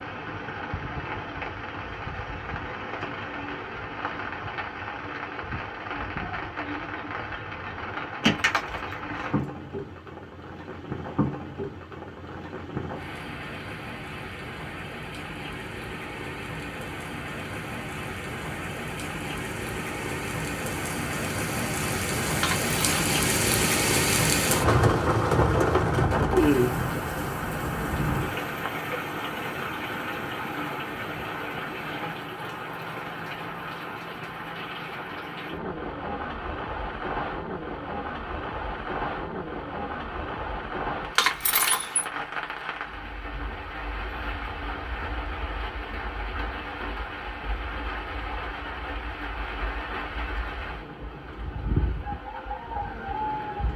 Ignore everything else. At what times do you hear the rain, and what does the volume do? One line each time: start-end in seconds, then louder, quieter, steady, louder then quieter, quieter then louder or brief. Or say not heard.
0.0-53.7 louder then quieter.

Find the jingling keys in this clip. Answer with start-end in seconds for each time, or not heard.
8.2-9.4, 22.4-23.1, 41.1-42.0.